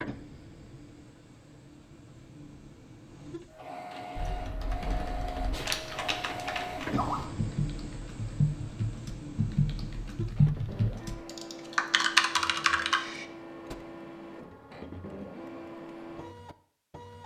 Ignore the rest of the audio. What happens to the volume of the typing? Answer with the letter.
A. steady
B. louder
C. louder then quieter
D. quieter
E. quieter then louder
B.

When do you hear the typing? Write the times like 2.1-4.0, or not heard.
4.2-13.8.